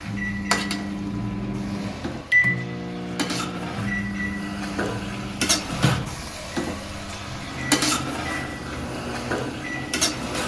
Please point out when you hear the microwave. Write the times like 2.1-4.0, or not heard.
0.0-10.4.